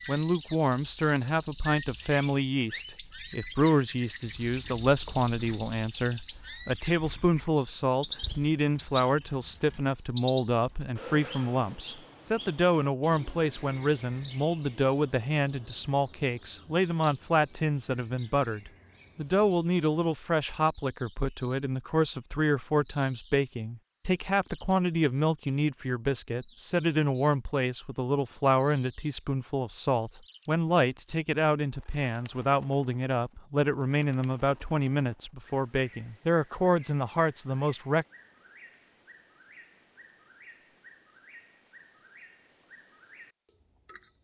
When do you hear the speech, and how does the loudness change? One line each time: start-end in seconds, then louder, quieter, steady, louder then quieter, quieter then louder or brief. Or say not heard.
0.1-38.0 steady.